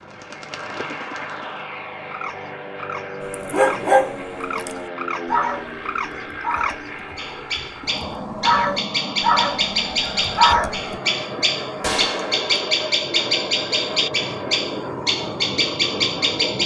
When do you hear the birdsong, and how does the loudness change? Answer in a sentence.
The birdsong can be heard from 0.0 to 16.6 s, getting louder.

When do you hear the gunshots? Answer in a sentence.
The gunshots can be heard from 11.8 to 12.7 s.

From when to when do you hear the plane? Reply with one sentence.
The plane can be heard from 0.0 to 16.6 s.